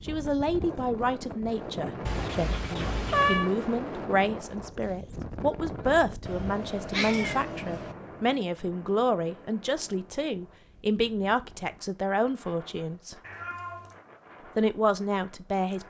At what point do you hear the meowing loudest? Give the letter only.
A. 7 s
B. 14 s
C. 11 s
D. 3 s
D.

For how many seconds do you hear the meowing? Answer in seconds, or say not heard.
4 s.